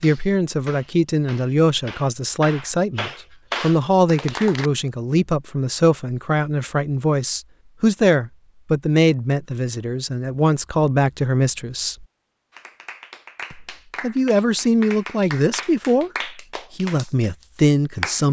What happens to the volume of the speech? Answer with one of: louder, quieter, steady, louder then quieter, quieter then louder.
steady.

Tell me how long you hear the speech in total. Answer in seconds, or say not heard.
17 s.